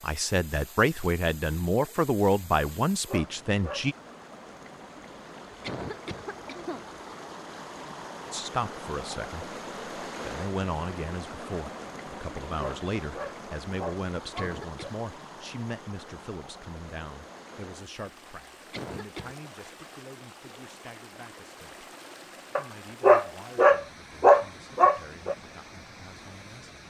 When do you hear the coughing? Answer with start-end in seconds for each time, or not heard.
5.6-6.8, 14.3-15.1, 18.7-19.4.